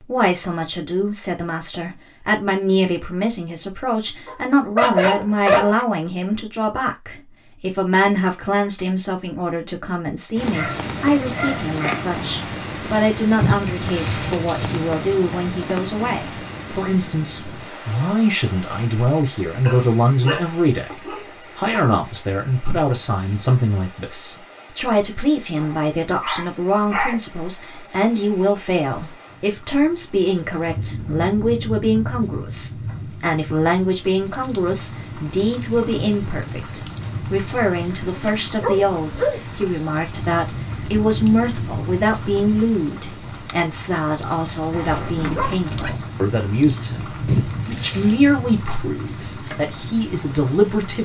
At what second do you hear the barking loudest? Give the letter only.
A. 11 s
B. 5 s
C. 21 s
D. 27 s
B.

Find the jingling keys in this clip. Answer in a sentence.
The jingling keys can be heard from 13.4 to 14.8 s, from 22.6 to 23.6 s and from 47.2 to 48.2 s.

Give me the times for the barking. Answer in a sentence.
You can hear the barking from 4.2 to 5.8 s, from 10.3 to 12.1 s, from 19.6 to 21.8 s, from 25.6 to 27.1 s, from 37.9 to 39.6 s and from 44.7 to 45.9 s.